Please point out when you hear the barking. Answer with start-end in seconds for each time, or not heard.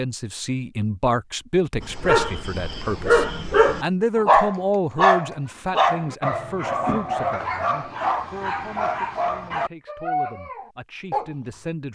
1.8-11.3.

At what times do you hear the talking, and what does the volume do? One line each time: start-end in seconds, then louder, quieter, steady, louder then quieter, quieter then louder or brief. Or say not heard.
0.0-11.9 quieter.